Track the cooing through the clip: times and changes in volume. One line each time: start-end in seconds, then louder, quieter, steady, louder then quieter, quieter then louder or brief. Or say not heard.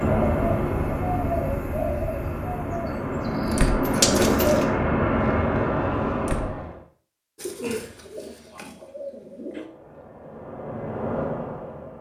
0.0-4.7 quieter then louder
7.3-9.7 brief.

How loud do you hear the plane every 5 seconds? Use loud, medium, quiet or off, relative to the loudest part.
loud, loud, medium.